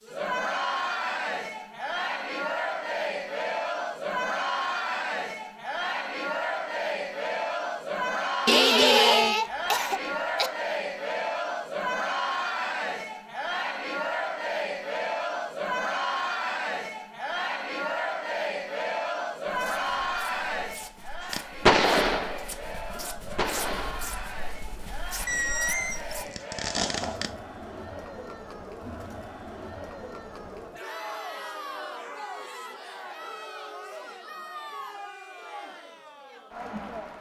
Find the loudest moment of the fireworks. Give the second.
22 s.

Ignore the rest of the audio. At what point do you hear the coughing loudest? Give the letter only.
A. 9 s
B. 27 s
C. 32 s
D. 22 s
A.